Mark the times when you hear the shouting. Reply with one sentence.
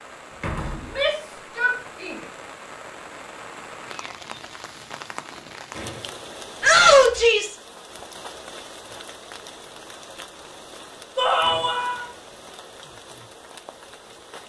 The shouting can be heard from 0.8 to 2.2 s, from 6.6 to 7.5 s and from 11.2 to 12.1 s.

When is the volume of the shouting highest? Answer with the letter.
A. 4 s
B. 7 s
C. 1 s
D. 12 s
B.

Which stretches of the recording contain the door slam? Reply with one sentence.
You can hear the door slam from 0.3 to 1.1 s, from 5.8 to 6.2 s and from 11.4 to 11.9 s.